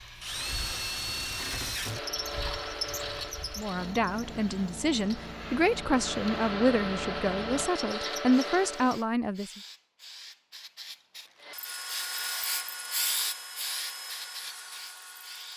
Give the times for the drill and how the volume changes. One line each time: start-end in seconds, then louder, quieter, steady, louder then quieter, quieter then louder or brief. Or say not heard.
0.0-9.1 quieter then louder
11.4-15.5 quieter.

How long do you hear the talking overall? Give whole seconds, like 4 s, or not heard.
6 s.